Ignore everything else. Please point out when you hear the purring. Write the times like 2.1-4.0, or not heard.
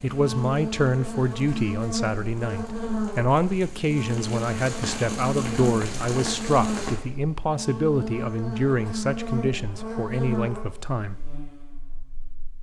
not heard.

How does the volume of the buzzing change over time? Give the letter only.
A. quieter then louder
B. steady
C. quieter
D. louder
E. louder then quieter
B.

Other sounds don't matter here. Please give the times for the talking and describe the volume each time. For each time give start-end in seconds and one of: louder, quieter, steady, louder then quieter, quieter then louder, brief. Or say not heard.
0.0-11.2 steady.